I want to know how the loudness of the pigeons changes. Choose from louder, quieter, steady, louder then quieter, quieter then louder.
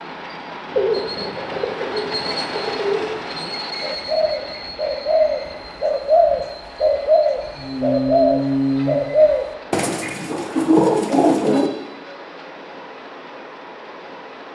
louder.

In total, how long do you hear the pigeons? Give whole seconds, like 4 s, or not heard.
11 s.